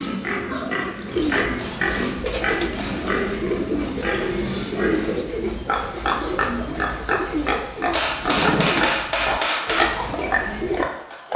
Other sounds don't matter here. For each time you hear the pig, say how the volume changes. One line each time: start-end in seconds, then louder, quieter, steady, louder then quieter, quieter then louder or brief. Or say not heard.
0.0-11.3 steady.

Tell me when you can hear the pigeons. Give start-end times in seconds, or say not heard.
1.1-10.9.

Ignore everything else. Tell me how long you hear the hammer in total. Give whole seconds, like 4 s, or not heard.
4 s.